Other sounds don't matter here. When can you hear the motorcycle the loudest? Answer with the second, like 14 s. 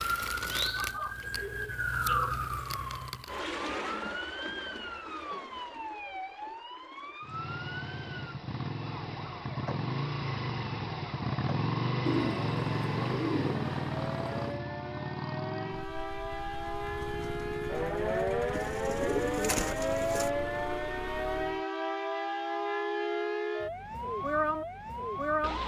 12 s.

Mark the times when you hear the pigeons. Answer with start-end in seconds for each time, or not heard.
0.8-2.4, 12.1-14.6, 18.5-20.3.